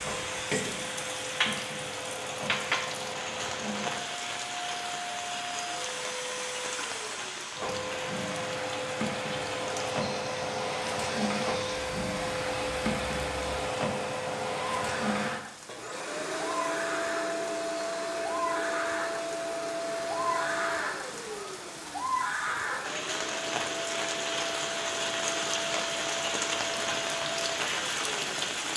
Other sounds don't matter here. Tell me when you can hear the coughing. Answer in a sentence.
The coughing can't be heard in this clip.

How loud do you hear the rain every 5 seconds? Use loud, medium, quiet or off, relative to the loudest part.
loud, medium, medium, medium, loud, loud.